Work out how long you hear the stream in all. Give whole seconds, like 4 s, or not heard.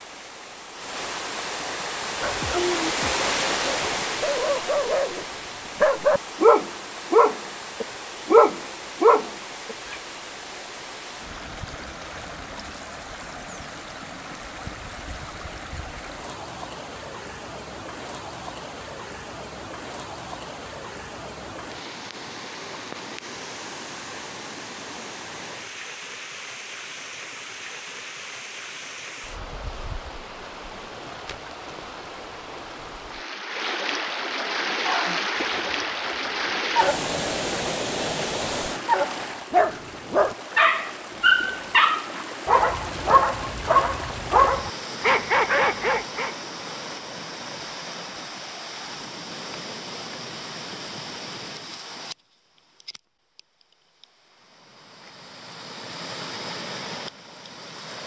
58 s.